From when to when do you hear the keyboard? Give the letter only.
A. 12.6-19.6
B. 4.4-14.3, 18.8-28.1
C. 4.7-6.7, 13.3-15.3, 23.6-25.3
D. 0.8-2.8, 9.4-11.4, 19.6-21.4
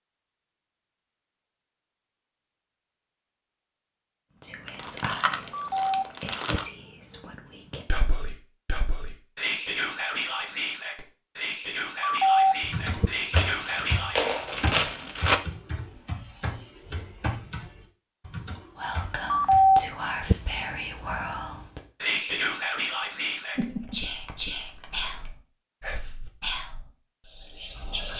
A.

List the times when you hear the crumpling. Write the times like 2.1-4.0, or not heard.
4.7-6.7, 13.3-15.3, 23.6-25.3.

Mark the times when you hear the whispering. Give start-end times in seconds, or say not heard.
4.4-14.3, 18.8-28.1.